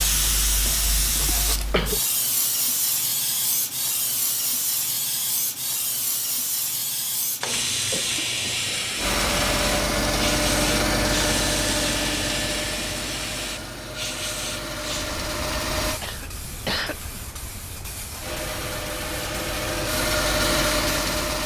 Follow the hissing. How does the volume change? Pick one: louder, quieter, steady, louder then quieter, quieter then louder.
quieter.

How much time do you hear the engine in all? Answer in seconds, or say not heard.
10 s.